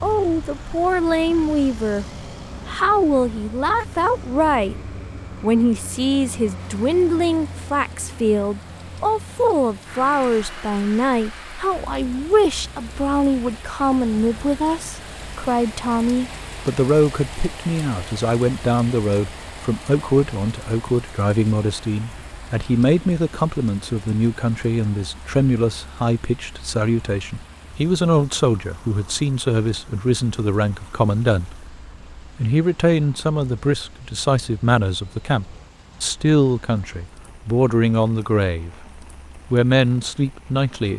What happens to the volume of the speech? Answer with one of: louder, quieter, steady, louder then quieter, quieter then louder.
steady.